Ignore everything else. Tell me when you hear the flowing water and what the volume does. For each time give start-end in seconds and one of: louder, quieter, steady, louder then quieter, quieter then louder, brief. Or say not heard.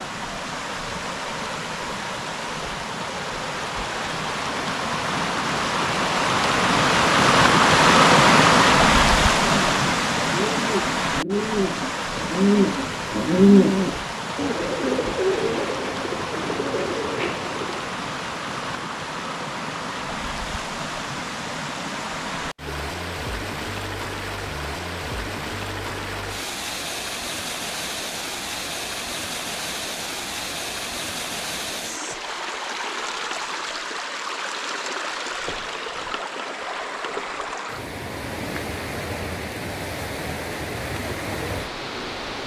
0.0-42.4 quieter.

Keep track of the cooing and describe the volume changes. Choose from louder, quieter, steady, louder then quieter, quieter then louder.
louder then quieter.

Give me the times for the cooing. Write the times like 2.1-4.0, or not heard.
9.4-17.9.